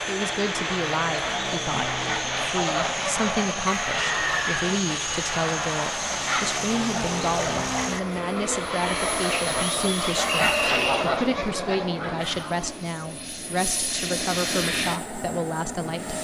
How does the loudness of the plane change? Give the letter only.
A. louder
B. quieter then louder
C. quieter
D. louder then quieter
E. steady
E.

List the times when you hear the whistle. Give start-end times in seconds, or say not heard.
3.6-4.7, 10.2-11.1.